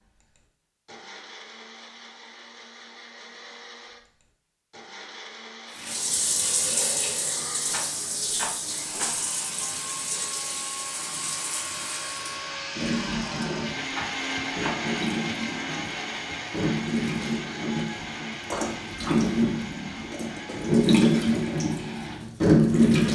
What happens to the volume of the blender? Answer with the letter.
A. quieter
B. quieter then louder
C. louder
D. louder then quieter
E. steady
D.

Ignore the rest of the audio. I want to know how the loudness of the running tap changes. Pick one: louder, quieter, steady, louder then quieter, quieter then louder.
quieter then louder.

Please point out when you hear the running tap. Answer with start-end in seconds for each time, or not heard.
5.8-23.1.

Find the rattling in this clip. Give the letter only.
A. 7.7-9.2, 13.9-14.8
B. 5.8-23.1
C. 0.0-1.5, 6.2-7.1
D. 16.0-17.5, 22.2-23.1
A.